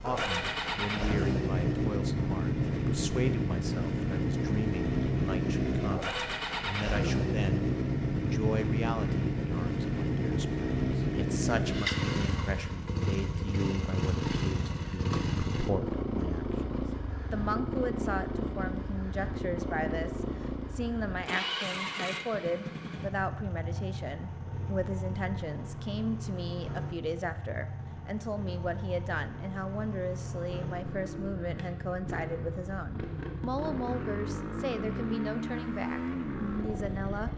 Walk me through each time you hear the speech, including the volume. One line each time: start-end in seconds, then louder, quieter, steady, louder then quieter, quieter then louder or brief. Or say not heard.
0.0-37.3 steady.